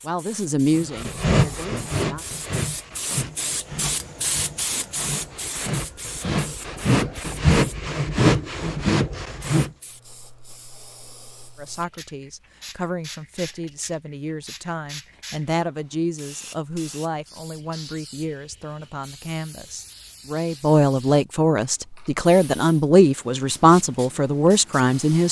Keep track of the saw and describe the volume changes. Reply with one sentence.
The volume of the saw goes down, then up.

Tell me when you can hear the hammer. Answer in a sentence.
You can't hear the hammer here.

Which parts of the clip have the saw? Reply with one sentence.
You can hear the saw from 0.8 to 9.7 s.